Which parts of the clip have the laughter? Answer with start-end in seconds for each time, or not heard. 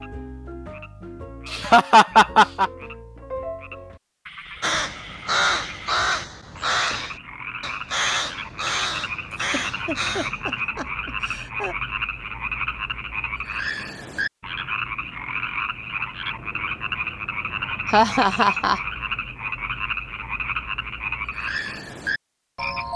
1.4-2.7, 9.3-11.8, 17.9-18.8.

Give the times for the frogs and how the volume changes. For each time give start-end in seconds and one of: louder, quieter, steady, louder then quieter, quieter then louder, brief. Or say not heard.
0.0-22.9 louder.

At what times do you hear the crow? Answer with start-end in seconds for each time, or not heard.
4.6-10.6.